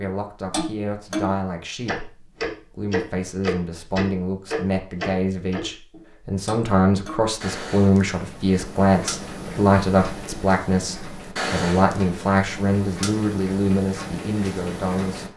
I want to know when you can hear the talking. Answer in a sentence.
The talking can be heard from 0.0 to 15.2 s.